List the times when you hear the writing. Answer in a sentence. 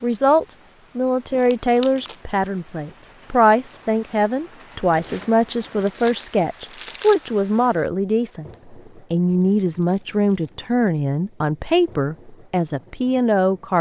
The writing can't be heard in this clip.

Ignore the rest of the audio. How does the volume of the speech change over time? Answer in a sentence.
The loudness of the speech stays about the same.